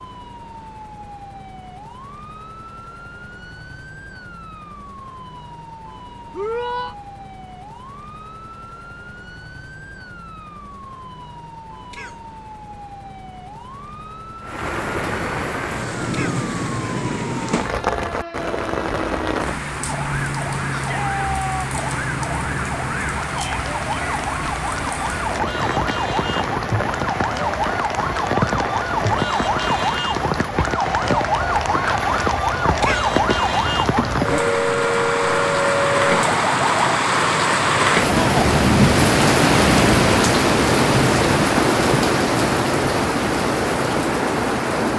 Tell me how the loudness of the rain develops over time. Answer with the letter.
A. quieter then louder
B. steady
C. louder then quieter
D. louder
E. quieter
D.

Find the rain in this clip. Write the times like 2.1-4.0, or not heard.
14.4-44.9.